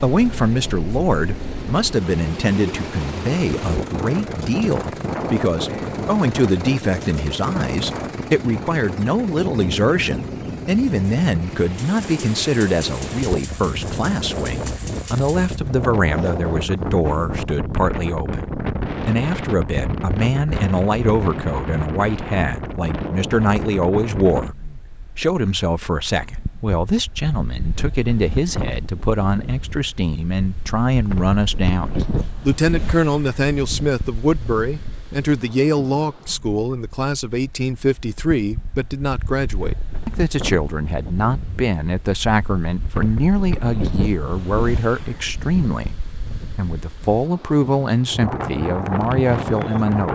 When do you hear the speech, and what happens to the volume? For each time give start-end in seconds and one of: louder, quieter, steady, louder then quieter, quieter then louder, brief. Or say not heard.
0.0-24.6 steady
25.1-50.1 steady.